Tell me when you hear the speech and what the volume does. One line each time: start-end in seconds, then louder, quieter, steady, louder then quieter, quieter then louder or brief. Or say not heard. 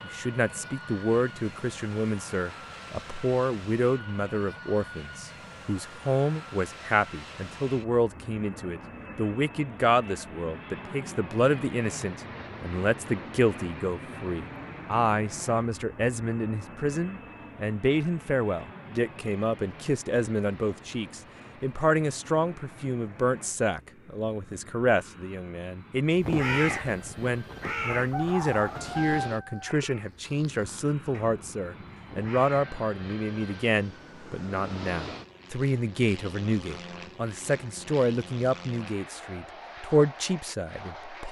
0.0-41.2 steady.